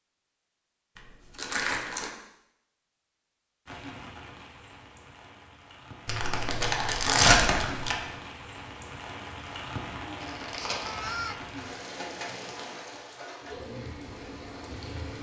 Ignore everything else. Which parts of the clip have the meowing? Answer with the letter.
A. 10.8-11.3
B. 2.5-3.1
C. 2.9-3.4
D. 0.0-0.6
A.